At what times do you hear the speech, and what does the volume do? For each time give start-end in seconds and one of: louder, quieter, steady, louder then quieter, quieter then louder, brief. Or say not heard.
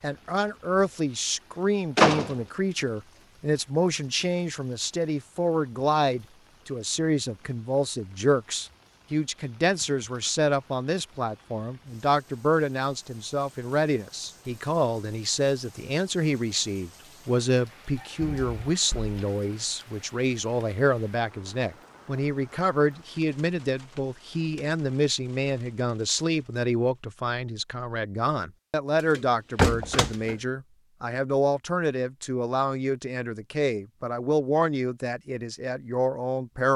0.0-36.7 steady.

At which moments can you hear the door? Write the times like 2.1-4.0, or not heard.
1.9-2.4, 18.2-19.2, 29.1-30.4.